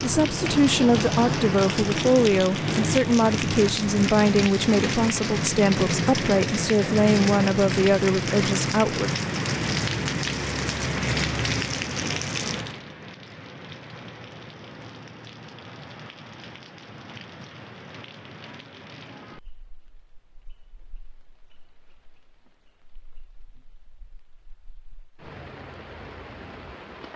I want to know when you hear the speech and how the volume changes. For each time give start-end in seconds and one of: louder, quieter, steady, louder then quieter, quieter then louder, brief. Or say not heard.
0.0-9.1 steady.